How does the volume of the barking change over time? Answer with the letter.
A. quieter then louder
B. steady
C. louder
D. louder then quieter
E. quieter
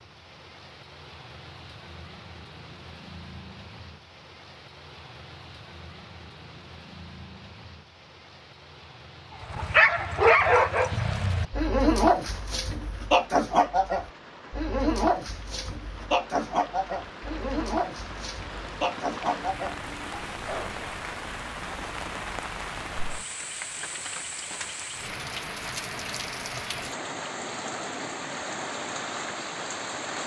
E.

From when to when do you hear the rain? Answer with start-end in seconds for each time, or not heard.
0.0-30.2.